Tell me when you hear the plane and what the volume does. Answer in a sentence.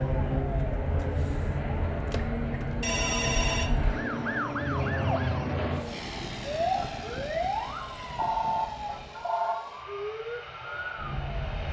The plane can be heard from 0.0 to 11.6 s, getting quieter.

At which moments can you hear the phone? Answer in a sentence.
You can hear the phone from 2.8 to 3.7 s and from 8.2 to 9.6 s.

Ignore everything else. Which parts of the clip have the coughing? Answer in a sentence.
The coughing can't be heard in this clip.